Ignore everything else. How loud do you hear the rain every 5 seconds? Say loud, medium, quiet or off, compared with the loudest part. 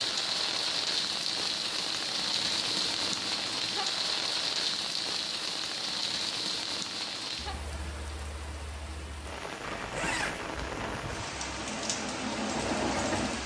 loud, medium, medium.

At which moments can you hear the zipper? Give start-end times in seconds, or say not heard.
9.6-10.9.